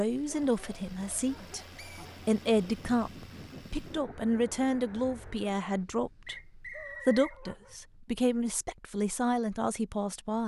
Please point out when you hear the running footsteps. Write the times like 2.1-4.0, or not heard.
not heard.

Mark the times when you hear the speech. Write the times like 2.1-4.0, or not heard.
0.0-1.6, 2.2-10.4.